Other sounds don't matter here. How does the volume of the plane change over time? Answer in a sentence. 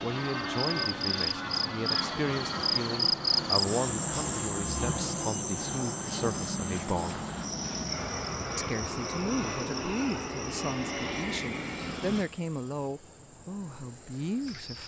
The loudness of the plane goes down.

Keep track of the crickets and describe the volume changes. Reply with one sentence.
The volume of the crickets goes down.